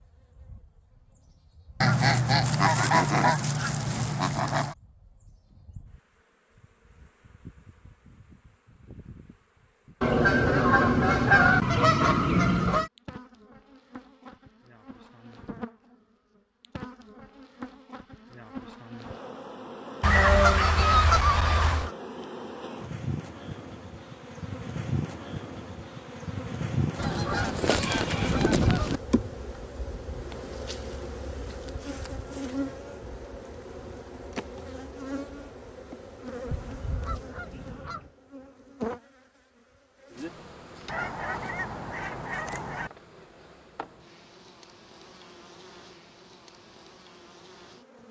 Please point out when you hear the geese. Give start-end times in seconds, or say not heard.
1.8-4.8, 10.0-12.9, 20.0-21.9, 26.9-29.0, 36.5-38.1, 40.9-42.9.